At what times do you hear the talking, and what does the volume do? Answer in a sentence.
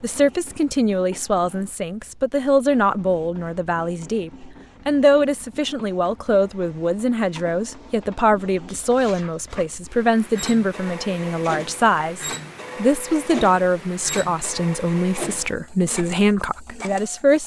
The talking can be heard from 0.0 to 17.4 s, at a steady volume.